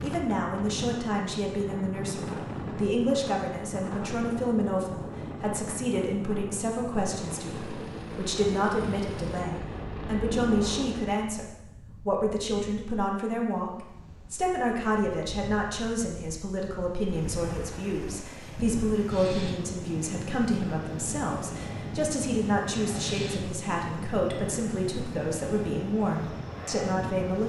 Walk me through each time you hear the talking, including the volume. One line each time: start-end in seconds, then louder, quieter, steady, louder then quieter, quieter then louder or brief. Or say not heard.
0.0-27.4 steady.